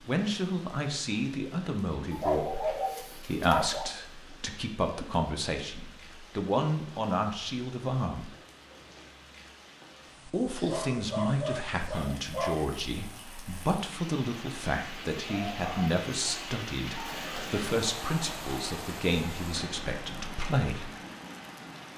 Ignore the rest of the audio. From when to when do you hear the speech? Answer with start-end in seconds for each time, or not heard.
0.1-8.3, 10.2-20.9.